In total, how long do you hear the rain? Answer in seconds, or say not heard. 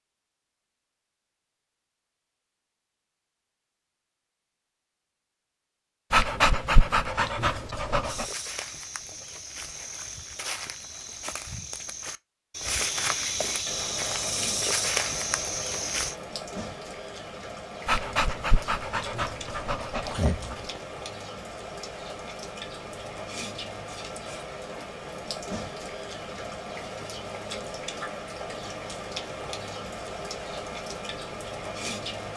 19 s.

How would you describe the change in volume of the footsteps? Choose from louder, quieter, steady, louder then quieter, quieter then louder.
louder.